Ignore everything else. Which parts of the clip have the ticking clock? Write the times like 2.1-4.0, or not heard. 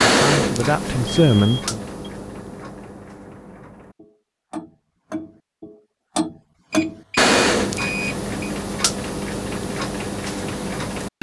0.0-11.1.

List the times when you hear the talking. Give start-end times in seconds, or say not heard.
0.1-1.8.